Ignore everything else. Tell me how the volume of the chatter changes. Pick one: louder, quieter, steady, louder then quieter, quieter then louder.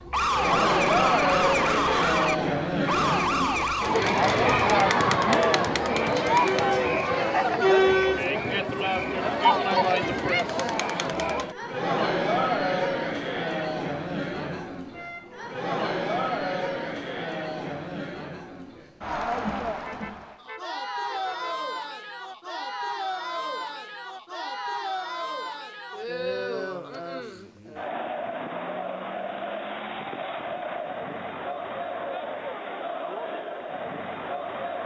quieter.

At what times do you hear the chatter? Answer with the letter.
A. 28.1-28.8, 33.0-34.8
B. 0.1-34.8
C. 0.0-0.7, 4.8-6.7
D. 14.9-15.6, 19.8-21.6
B.